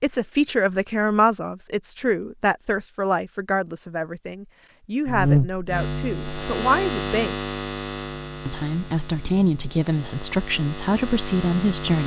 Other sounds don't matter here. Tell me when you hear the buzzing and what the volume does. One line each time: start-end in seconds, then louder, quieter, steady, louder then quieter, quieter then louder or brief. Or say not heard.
5.0-12.0 quieter then louder.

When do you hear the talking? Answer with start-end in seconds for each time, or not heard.
0.0-7.3, 8.4-12.0.